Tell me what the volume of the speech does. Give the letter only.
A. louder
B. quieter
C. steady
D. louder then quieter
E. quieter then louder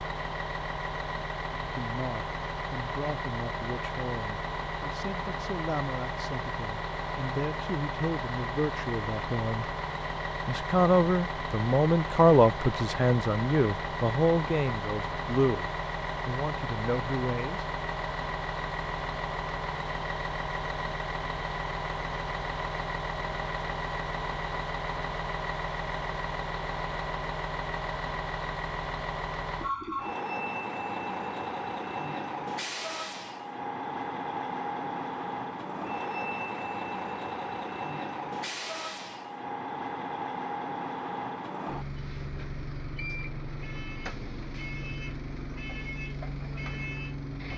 D.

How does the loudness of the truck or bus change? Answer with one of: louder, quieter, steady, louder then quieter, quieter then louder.
steady.